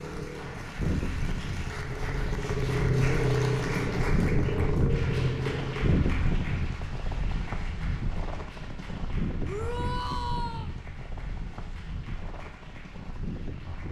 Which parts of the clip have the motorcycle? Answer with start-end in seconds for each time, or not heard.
0.0-6.0.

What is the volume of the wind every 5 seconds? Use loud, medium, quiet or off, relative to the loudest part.
loud, loud, medium.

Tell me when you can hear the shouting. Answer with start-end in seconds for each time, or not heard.
9.4-10.7.